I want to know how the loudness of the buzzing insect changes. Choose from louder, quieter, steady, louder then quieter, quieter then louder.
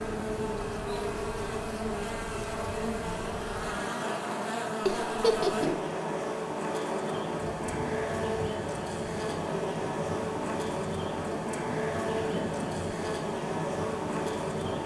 steady.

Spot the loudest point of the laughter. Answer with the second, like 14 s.
5 s.